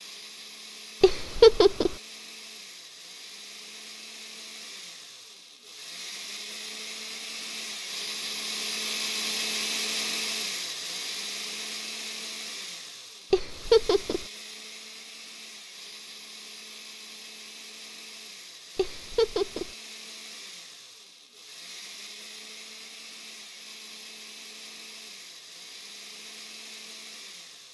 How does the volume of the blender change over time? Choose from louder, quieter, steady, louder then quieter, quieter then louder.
louder then quieter.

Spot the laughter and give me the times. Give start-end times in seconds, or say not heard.
1.0-1.9, 13.3-14.2, 18.8-19.7.